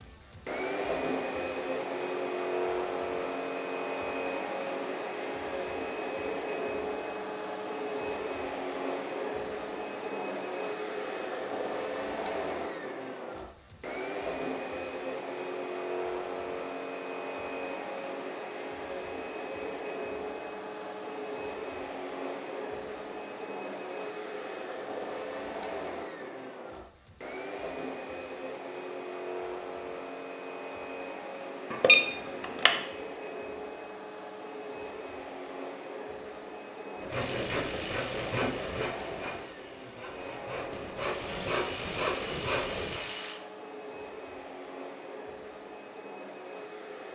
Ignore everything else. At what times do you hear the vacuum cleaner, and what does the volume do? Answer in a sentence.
The vacuum cleaner can be heard from 0.0 to 47.0 s, getting quieter.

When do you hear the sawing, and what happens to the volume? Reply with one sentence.
You can hear the sawing from 37.0 to 43.0 s, getting quieter then louder.